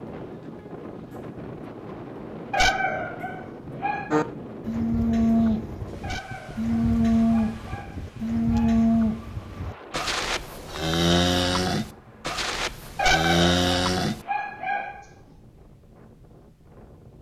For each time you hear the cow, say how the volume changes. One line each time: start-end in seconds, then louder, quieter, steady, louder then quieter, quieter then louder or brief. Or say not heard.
4.1-14.2 steady.